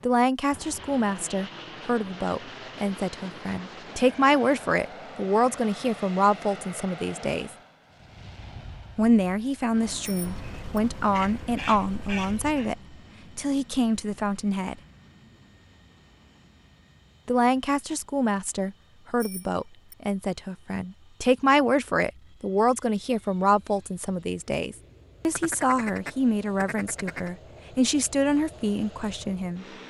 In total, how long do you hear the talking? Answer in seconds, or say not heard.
25 s.